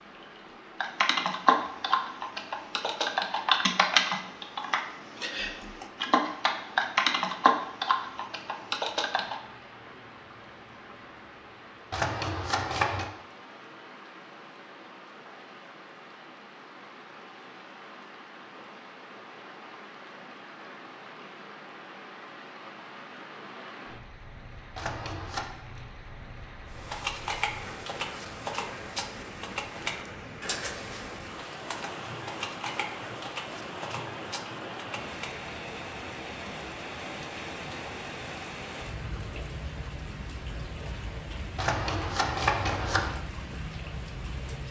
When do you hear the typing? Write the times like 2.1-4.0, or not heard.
0.8-9.3, 26.7-35.3.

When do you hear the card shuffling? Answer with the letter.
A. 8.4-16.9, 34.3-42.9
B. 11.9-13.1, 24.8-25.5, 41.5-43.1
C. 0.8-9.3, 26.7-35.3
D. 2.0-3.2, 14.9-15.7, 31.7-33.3
B.